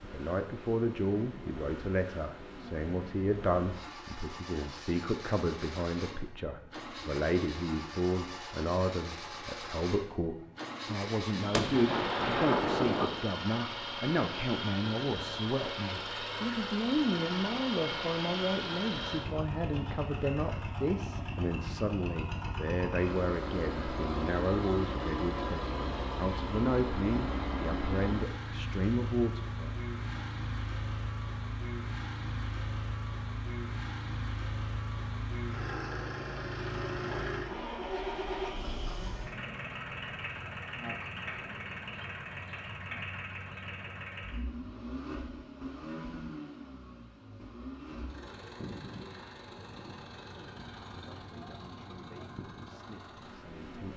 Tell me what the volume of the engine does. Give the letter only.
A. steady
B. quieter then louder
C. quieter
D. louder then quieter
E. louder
D.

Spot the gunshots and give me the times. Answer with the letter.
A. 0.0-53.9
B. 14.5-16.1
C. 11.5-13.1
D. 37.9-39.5
C.